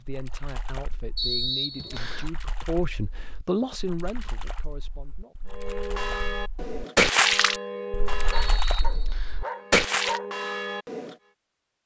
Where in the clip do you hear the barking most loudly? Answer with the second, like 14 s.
10 s.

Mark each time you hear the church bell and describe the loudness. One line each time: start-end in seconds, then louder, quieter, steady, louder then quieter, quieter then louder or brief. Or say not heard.
5.5-11.2 quieter then louder.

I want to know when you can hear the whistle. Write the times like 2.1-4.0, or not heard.
1.1-2.3, 8.3-9.4.